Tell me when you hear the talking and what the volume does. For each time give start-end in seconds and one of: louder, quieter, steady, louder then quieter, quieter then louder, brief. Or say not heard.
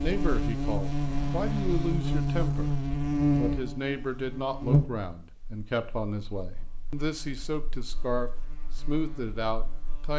0.0-2.8 brief
3.4-10.1 steady.